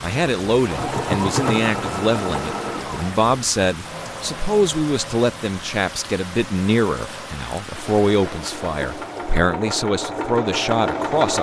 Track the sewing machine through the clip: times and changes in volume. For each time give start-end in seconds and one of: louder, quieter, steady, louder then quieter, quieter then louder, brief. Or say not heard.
0.0-11.3 quieter then louder.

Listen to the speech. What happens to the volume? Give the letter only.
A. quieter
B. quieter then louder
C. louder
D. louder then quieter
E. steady
E.